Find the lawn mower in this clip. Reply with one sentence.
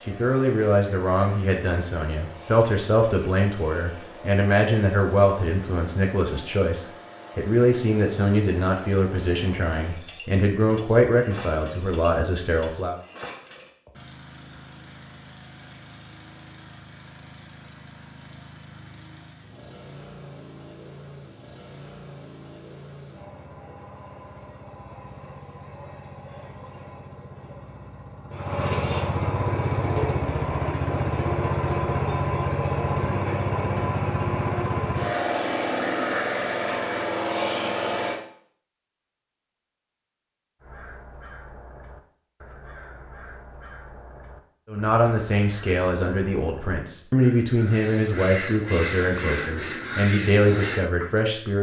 You can hear the lawn mower from 0.0 to 38.2 s.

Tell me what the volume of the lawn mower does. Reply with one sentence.
The volume of the lawn mower goes up.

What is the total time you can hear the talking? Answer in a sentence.
The talking can be heard for 20 seconds in total.